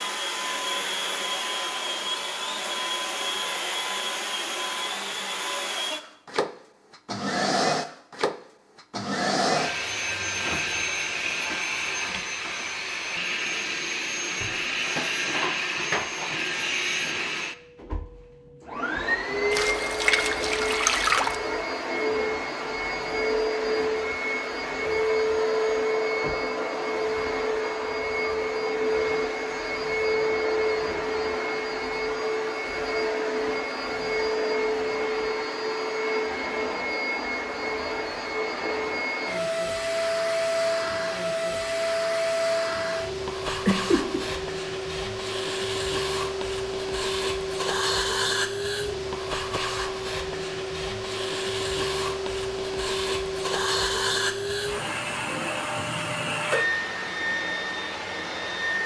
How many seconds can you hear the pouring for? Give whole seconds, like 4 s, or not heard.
2 s.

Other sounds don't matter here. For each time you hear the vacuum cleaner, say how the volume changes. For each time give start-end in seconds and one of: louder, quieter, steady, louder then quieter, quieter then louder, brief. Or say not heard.
0.0-58.8 steady.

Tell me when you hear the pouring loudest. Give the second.
21 s.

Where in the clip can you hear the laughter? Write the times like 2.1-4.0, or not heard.
43.5-44.2.